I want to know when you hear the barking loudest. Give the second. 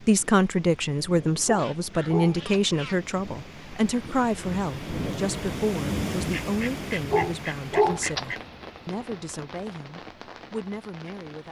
8 s.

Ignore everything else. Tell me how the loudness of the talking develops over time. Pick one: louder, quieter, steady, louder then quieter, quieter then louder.
quieter.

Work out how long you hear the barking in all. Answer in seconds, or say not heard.
2 s.